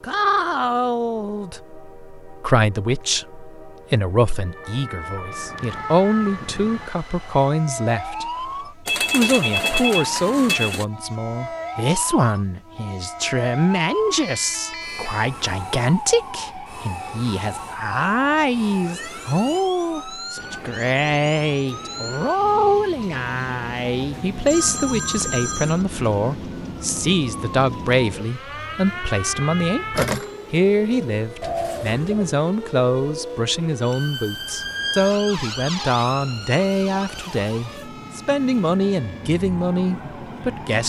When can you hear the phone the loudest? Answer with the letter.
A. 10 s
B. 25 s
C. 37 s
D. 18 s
A.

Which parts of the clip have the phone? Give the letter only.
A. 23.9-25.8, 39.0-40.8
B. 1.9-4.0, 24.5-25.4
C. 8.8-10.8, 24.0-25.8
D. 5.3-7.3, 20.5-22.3
C.